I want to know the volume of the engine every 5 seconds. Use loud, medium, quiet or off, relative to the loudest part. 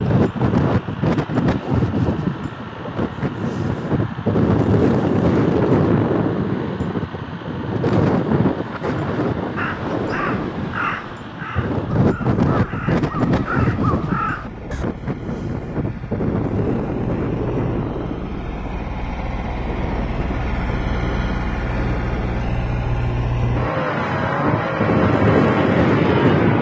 quiet, quiet, quiet, medium, loud, loud.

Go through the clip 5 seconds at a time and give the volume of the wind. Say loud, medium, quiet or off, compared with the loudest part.
loud, loud, medium, medium, medium, loud.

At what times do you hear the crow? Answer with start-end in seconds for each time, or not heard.
9.6-14.8.